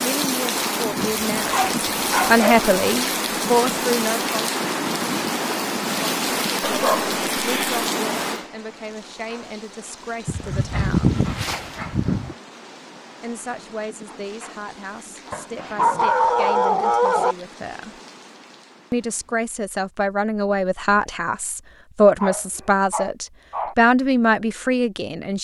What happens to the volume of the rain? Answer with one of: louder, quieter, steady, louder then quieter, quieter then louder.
quieter.